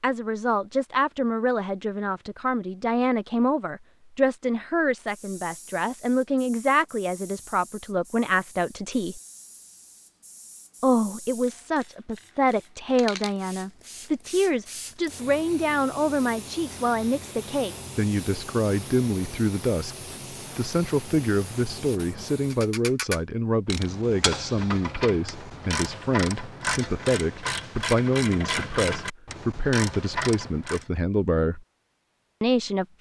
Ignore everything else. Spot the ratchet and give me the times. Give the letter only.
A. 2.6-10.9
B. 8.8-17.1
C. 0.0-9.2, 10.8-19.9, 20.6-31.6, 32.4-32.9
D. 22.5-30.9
D.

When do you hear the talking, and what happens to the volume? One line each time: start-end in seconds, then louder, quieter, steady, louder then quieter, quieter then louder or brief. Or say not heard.
0.0-9.2 steady
10.8-19.9 steady
20.6-31.6 steady
32.4-32.9 brief.